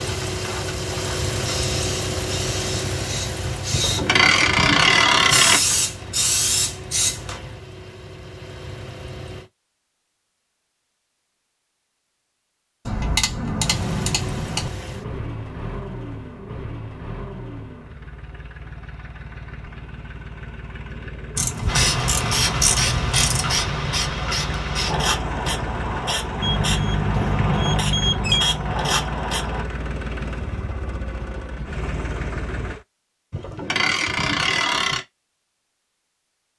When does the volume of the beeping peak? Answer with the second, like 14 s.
28 s.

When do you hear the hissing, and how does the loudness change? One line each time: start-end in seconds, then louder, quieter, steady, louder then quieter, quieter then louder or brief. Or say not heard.
0.0-7.3 louder
21.6-29.6 steady.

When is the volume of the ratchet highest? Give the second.
5 s.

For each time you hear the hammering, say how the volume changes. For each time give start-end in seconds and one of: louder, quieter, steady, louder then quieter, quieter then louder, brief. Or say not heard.
not heard.